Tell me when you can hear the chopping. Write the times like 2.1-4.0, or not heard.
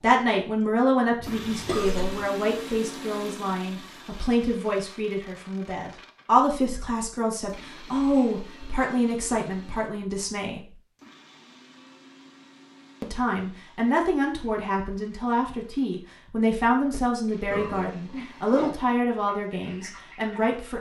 not heard.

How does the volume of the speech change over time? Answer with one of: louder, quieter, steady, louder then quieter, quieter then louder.
steady.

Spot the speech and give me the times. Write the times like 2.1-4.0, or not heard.
0.0-10.8, 13.0-20.7.